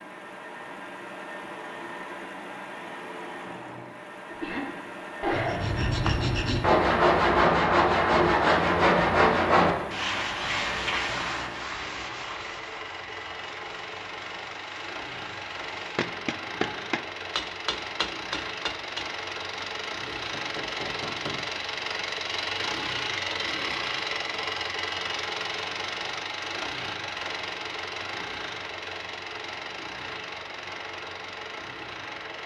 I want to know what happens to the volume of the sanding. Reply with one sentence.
The loudness of the sanding goes down.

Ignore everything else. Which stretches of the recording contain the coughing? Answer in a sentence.
The coughing can be heard from 4.2 to 5.8 s.